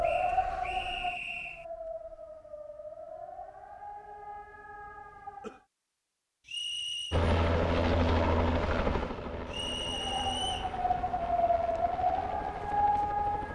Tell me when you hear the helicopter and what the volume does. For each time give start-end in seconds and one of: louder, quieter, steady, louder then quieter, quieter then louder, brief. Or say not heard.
7.1-13.4 quieter.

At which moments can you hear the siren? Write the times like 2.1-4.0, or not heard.
0.0-5.7, 9.9-13.4.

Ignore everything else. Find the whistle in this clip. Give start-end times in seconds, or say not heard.
0.0-1.6, 6.5-7.2, 9.4-10.8.